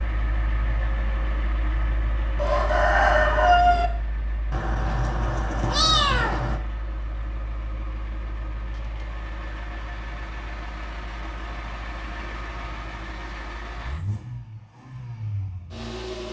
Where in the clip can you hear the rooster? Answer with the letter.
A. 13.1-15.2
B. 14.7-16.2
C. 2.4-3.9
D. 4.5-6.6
C.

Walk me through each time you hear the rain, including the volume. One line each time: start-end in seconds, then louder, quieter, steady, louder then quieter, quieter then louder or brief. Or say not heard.
not heard.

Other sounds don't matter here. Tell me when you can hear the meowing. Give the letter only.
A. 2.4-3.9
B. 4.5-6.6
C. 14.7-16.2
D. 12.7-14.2
B.